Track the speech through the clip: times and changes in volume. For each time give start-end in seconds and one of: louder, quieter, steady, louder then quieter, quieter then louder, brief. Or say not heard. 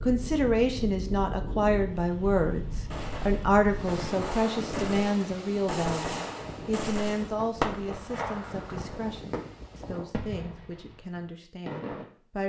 0.0-12.4 quieter.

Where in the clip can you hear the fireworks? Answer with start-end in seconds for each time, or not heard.
2.9-12.1.